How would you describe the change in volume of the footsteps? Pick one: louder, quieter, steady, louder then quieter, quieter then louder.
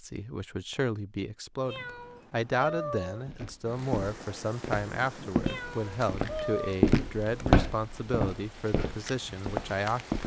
louder then quieter.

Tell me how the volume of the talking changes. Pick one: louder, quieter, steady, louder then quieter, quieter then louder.
steady.